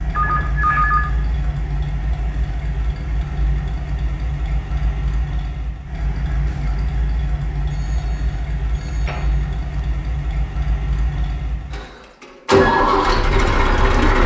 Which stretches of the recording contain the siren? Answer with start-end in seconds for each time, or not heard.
not heard.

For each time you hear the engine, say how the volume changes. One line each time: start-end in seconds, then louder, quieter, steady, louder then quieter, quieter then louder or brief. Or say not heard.
0.0-14.2 louder.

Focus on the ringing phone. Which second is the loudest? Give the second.
1 s.